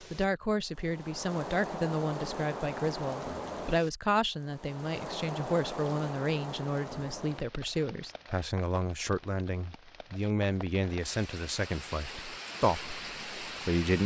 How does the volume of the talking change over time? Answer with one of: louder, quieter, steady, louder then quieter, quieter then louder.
steady.